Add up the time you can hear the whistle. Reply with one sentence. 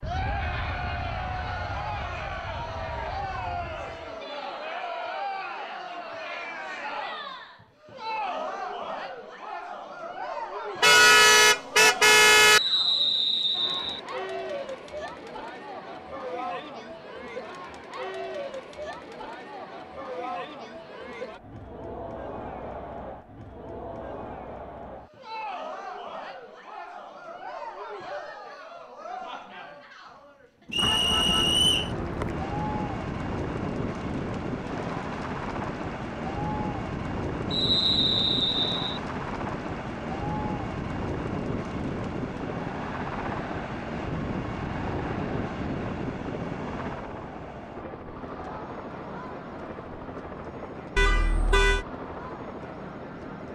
The whistle can be heard for 4 seconds in total.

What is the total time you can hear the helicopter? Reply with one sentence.
The helicopter can be heard for 27 seconds in total.